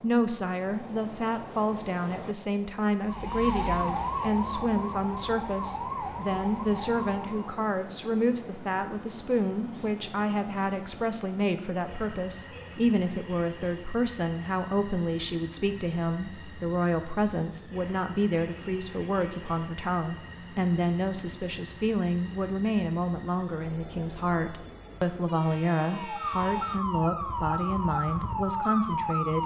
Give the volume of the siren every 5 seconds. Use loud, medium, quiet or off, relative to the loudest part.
loud, medium, off, off, off, loud.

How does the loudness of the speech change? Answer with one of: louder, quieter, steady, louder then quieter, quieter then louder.
steady.